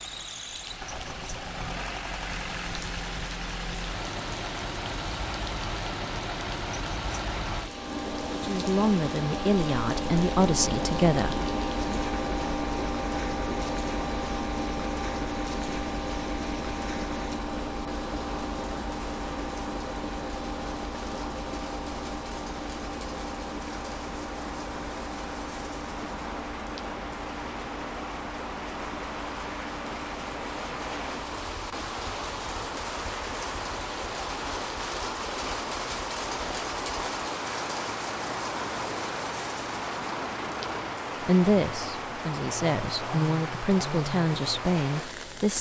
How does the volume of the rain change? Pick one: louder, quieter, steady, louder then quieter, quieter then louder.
louder.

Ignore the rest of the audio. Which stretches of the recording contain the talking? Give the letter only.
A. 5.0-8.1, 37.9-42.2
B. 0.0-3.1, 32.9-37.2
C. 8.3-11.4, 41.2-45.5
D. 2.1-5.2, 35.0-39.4
C.